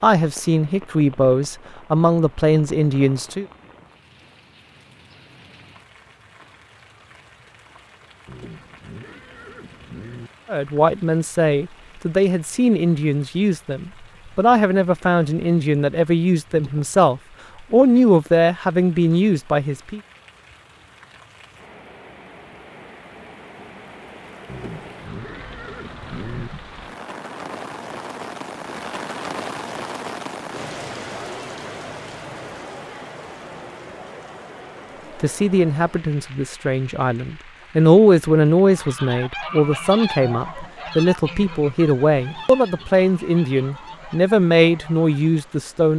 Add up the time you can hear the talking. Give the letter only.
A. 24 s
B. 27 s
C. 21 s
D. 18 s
A.